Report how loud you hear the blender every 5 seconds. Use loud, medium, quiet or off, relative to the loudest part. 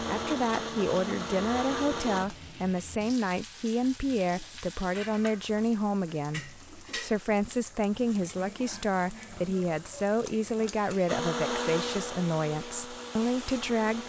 loud, off, loud.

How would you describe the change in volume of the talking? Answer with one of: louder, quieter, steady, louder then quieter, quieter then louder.
steady.